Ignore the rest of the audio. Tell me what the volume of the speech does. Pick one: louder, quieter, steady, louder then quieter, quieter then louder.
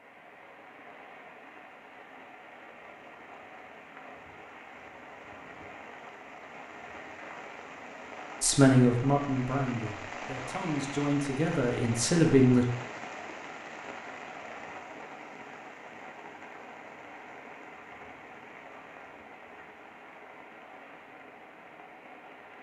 quieter then louder.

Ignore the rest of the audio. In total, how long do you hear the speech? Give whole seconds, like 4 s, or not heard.
4 s.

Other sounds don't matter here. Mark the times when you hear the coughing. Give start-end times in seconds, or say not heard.
not heard.